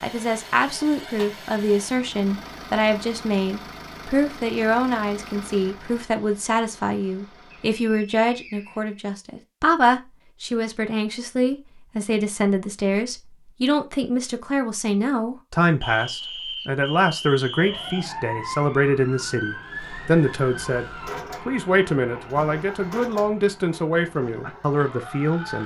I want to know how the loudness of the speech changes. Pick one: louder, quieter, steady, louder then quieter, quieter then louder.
steady.